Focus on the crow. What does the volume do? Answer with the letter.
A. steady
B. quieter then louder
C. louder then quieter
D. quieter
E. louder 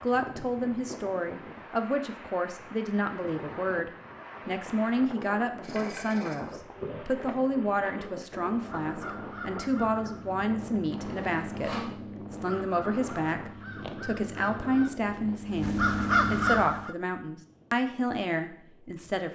E.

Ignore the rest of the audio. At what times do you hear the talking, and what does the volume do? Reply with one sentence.
You can hear the talking from 0.0 to 19.3 s, at a steady volume.